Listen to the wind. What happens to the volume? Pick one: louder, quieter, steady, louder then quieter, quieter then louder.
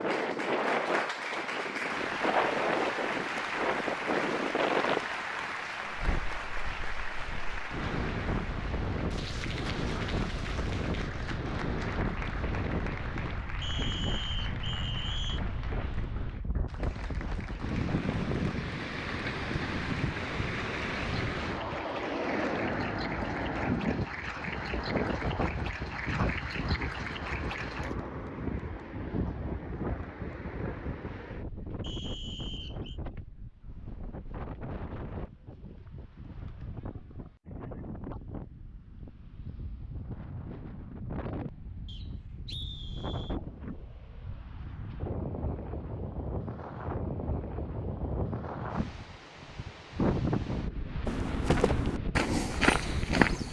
quieter then louder.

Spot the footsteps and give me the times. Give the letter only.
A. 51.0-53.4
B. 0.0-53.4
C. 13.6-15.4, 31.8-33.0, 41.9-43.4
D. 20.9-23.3
A.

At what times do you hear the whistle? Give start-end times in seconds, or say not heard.
13.6-15.4, 31.8-33.0, 41.9-43.4.